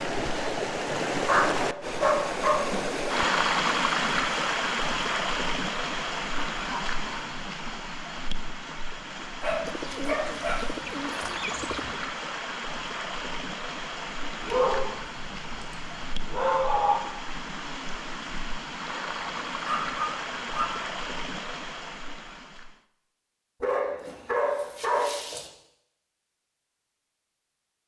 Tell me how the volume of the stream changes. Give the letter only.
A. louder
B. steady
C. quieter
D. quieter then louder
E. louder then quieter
C.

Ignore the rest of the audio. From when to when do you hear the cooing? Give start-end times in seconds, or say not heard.
9.7-12.0.